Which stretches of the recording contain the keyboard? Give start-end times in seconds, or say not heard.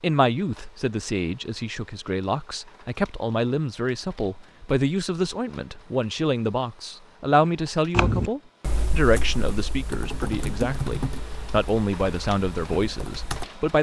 7.9-13.4.